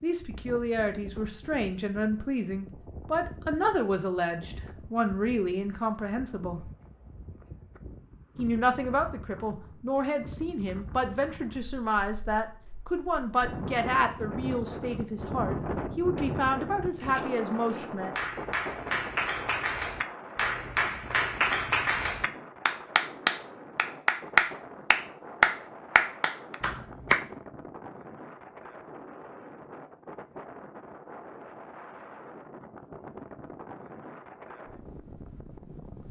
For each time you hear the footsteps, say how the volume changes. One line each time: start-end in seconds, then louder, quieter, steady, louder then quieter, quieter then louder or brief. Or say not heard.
not heard.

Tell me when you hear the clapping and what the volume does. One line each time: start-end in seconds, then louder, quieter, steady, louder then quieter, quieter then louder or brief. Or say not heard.
18.1-27.2 louder.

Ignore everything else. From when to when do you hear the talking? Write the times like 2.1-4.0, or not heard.
0.0-6.7, 8.3-18.1.